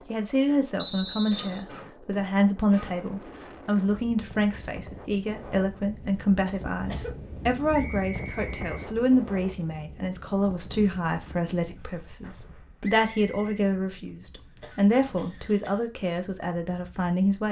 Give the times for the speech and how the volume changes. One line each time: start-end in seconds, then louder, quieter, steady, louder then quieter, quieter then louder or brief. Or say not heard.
0.1-17.4 steady.